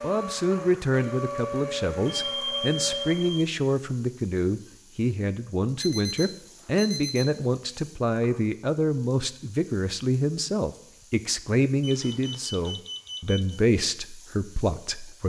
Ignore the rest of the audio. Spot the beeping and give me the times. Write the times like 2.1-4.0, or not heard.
2.1-3.5, 5.8-7.4, 11.8-13.6.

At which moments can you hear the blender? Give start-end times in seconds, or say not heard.
0.0-3.5.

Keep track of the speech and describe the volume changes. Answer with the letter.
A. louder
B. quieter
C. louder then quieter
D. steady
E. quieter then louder
D.